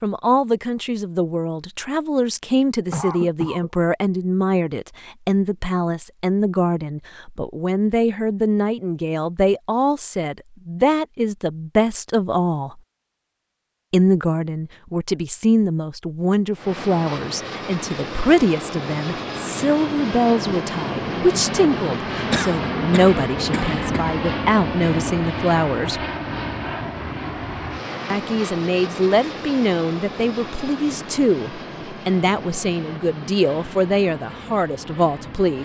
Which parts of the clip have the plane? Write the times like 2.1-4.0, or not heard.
16.5-35.6.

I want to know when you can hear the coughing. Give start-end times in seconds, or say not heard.
2.9-3.7, 22.3-24.1.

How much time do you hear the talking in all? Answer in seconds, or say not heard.
32 s.